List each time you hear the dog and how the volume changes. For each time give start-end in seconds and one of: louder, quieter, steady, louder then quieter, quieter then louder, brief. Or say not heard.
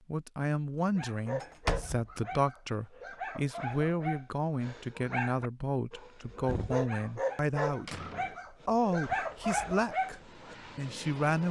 0.9-10.6 louder.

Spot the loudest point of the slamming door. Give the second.
2 s.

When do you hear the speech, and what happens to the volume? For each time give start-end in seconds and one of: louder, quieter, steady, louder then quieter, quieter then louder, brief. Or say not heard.
0.1-8.0 steady
8.7-11.4 brief.